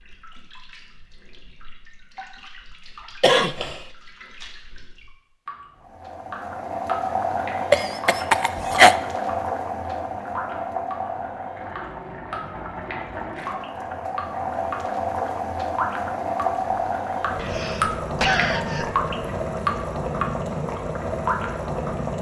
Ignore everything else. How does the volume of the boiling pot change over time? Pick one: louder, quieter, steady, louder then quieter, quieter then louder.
steady.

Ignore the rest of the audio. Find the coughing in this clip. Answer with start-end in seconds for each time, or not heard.
3.2-3.8, 7.7-8.9, 17.4-19.1.